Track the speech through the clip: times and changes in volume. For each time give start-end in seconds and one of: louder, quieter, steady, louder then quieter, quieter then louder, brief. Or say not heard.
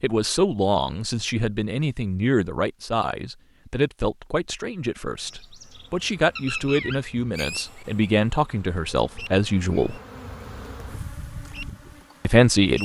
0.0-10.0 quieter then louder
12.2-12.7 brief.